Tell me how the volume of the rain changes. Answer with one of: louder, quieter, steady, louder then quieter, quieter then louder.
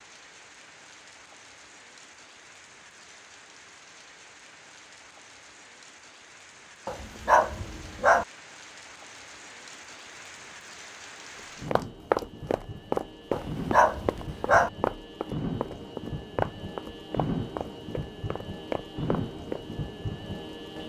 louder.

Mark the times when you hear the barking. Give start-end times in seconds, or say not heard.
6.8-8.2, 13.3-14.7.